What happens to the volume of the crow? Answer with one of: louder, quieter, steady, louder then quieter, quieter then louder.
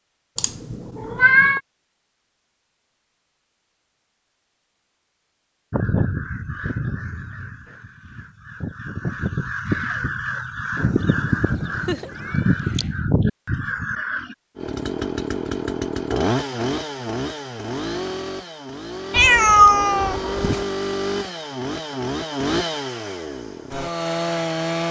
louder.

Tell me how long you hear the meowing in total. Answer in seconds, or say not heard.
4 s.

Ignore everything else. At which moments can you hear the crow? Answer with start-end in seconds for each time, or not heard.
5.7-14.3.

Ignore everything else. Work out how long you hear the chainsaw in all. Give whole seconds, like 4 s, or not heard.
10 s.